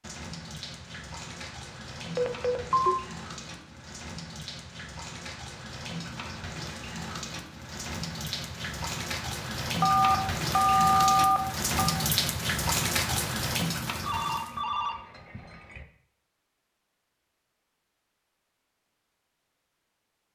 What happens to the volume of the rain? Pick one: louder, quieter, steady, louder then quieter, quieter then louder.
louder.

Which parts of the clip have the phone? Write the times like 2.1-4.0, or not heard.
2.1-3.0, 9.8-11.9, 14.0-15.8.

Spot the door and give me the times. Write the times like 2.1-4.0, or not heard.
not heard.